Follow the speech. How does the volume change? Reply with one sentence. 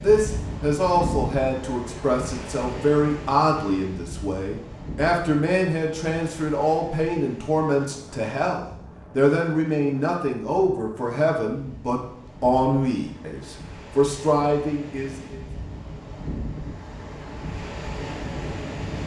The loudness of the speech stays about the same.